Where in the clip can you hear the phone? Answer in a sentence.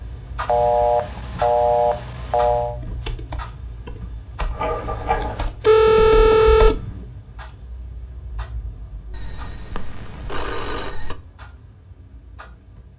The phone can be heard from 0.5 to 2.8 s, from 5.6 to 6.8 s and from 9.1 to 11.2 s.